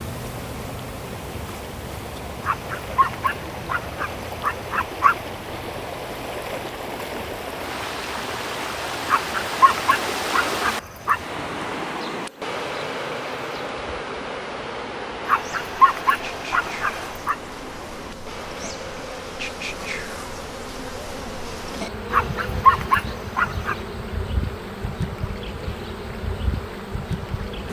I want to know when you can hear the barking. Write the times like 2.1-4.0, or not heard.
2.5-5.2, 9.1-11.2, 15.2-17.4, 22.1-23.8.